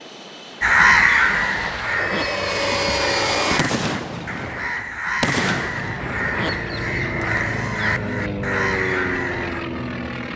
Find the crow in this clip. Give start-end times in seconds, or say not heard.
0.6-9.6.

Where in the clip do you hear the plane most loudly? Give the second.
3 s.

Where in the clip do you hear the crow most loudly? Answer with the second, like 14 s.
1 s.